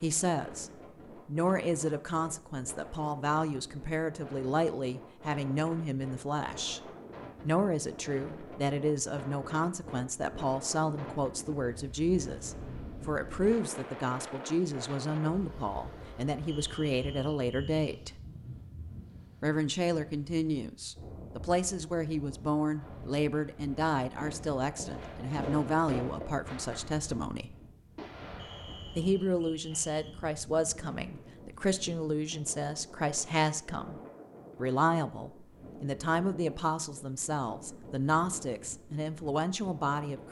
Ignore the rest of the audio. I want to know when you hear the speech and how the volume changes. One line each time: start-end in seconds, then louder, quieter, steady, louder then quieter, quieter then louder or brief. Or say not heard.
0.0-6.8 steady
7.4-18.1 steady
19.4-27.6 steady
28.9-40.2 steady.